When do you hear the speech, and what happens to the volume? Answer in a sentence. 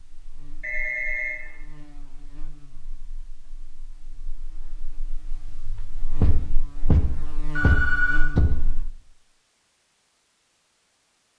You can't hear the speech here.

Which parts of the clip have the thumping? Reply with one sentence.
You can hear the thumping from 6.2 to 8.7 s.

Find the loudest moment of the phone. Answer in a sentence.
The loudest moment of the phone is at 8 seconds.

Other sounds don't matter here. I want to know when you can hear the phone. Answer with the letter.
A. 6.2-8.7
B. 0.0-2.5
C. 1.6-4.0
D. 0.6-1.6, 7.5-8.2
D.